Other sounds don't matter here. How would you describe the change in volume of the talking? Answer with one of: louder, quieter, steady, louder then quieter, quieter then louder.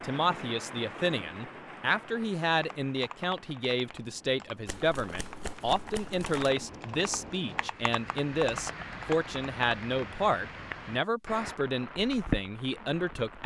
steady.